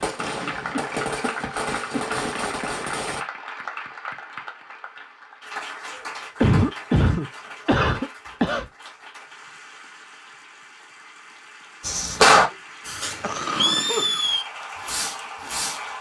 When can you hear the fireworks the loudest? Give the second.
12 s.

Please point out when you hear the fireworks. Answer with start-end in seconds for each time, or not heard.
0.0-3.2, 11.8-15.8.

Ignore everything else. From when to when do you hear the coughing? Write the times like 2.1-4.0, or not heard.
0.7-2.2, 6.4-8.7, 12.5-14.2.